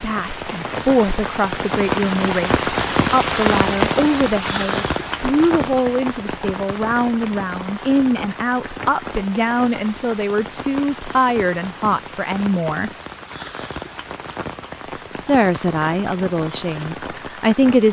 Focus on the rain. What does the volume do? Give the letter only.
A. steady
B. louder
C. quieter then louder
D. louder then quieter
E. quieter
E.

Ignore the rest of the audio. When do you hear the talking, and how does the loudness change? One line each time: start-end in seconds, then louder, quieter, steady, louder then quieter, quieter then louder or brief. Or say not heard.
0.0-12.9 steady
15.2-17.8 brief.